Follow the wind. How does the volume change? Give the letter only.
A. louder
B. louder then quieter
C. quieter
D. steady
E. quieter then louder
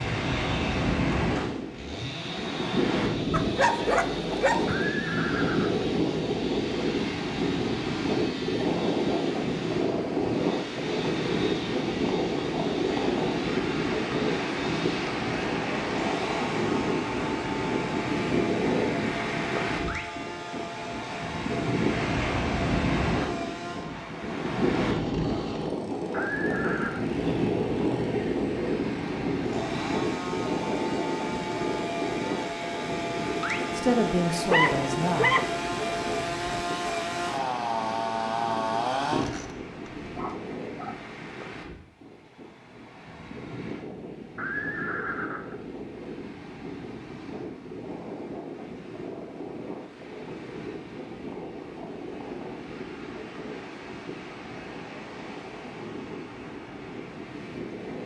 C.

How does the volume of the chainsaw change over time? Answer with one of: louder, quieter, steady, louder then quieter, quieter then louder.
louder.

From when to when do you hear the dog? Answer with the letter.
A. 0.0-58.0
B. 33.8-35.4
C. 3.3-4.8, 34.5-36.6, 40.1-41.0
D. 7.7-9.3
C.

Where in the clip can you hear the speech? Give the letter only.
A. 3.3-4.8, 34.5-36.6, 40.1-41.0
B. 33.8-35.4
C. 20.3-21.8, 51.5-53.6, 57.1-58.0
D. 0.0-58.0
B.